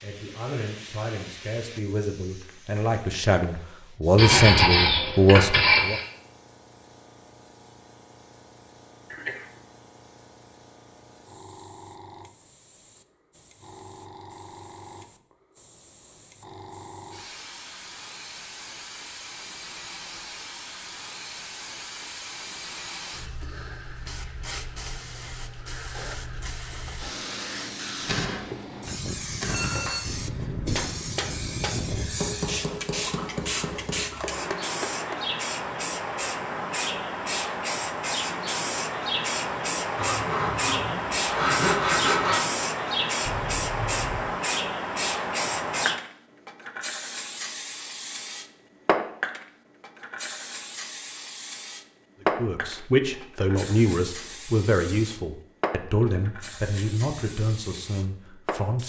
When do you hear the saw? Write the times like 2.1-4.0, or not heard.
4.2-6.0, 40.0-42.5.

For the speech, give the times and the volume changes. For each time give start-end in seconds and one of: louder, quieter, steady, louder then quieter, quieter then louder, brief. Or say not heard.
0.0-6.0 louder
52.4-58.8 quieter.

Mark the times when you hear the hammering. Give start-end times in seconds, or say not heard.
28.0-35.1.